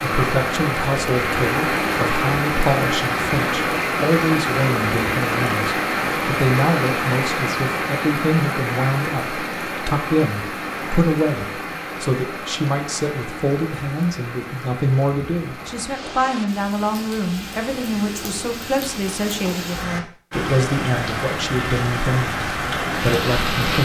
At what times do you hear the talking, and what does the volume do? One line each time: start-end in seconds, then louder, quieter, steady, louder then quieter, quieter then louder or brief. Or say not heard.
0.0-23.8 steady.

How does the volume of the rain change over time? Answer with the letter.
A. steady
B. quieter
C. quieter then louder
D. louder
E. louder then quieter
C.